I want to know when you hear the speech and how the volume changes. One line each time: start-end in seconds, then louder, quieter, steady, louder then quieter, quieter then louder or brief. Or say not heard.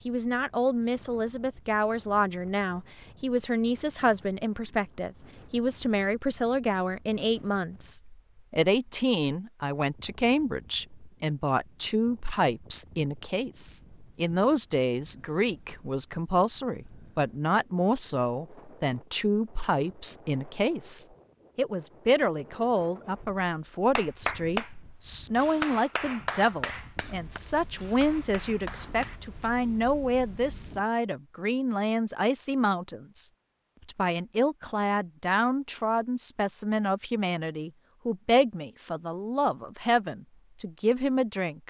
0.1-41.6 steady.